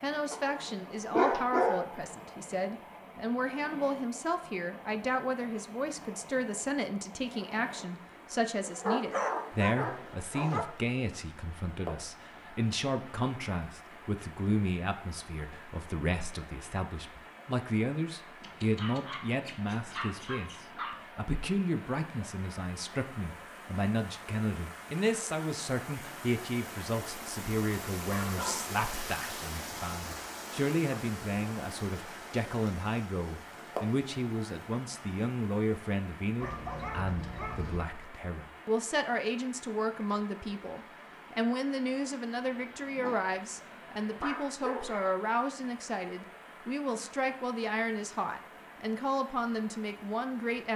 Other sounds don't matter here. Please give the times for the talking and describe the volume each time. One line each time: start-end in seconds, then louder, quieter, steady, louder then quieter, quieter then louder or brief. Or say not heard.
0.0-50.7 steady.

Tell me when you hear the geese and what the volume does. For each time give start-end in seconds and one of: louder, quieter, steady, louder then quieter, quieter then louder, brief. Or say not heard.
not heard.